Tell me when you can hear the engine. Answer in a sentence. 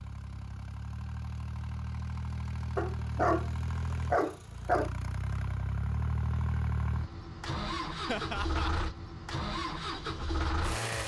You can hear the engine from 0.0 to 11.0 s.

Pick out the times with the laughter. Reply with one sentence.
The laughter can be heard from 8.1 to 8.7 s.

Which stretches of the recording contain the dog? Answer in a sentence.
The dog can be heard from 2.8 to 4.9 s.